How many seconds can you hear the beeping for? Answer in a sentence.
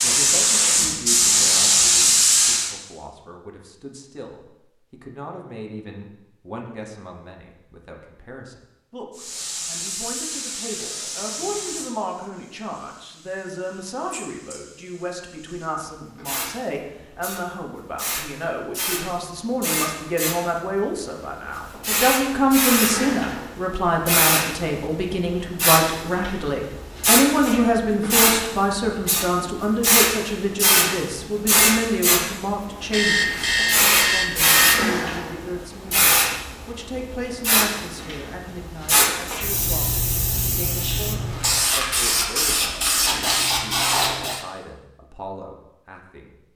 The beeping can be heard for 2 seconds in total.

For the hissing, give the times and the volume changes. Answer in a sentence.
You can hear the hissing briefly from 0.0 to 2.7 s; and from 9.2 to 44.4 s, getting louder.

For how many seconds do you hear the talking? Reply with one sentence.
The talking can be heard for 46 seconds in total.